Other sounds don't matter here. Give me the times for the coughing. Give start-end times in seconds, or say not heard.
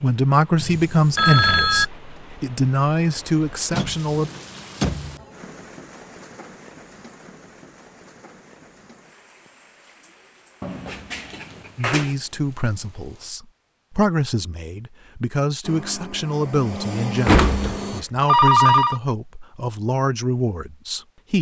not heard.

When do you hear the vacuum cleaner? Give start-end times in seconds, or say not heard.
15.6-18.1.